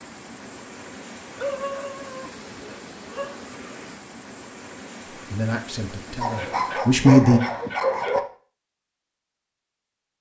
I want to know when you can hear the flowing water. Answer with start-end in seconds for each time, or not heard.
0.0-7.0.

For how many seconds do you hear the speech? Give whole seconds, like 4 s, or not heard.
2 s.